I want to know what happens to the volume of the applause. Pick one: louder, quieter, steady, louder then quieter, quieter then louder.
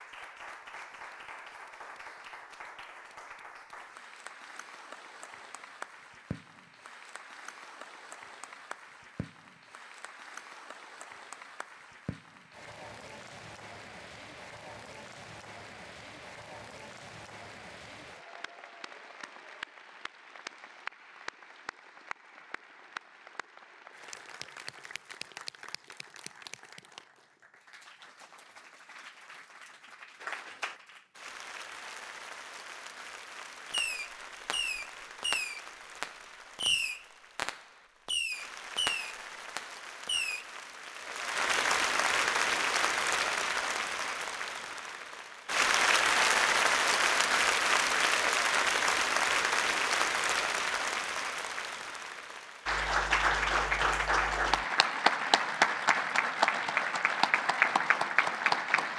louder.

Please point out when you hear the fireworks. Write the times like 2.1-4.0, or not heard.
33.7-40.5.